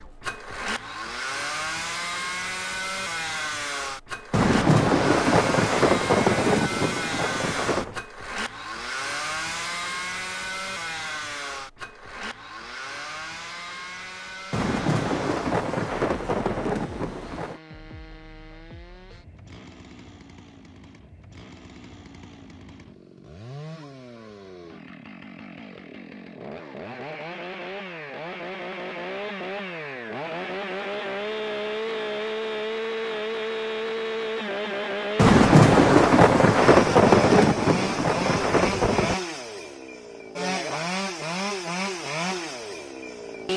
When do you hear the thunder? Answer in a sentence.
You can hear the thunder from 4.3 to 8.0 s, from 14.5 to 17.6 s and from 35.1 to 39.1 s.